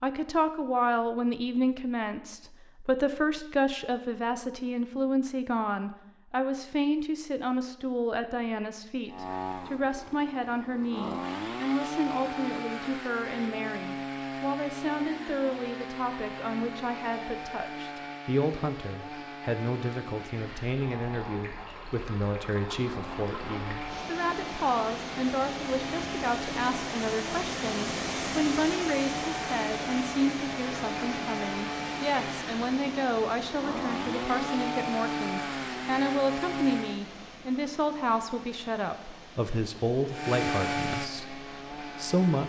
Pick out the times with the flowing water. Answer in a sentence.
You can hear the flowing water from 20.5 to 42.1 s.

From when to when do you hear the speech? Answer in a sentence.
The speech can be heard from 0.0 to 42.4 s.